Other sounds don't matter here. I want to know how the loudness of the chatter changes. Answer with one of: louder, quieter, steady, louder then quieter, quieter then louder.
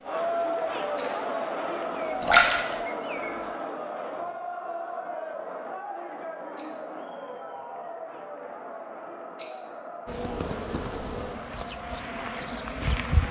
quieter.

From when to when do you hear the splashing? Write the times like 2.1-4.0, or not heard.
2.2-2.8.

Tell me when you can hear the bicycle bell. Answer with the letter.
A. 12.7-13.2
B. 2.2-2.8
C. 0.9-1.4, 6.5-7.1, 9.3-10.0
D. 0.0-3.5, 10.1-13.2
C.